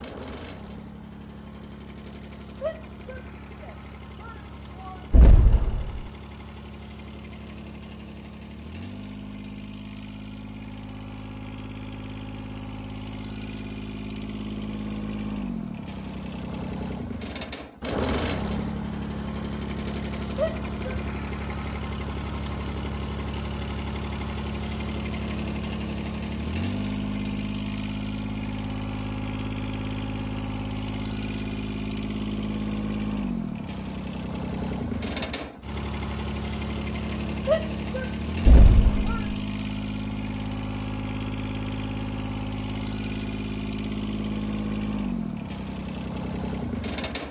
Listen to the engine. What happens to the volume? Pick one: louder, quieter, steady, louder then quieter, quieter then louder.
louder.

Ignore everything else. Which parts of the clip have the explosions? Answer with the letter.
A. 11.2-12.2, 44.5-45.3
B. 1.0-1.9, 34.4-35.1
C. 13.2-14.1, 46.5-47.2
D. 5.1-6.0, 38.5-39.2
D.